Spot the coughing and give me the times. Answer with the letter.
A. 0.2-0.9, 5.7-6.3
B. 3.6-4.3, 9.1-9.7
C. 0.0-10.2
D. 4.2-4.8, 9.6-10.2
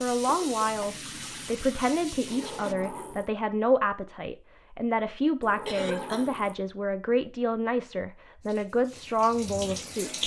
A.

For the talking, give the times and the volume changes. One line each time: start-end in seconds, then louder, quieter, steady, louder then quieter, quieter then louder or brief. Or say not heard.
0.0-10.2 steady.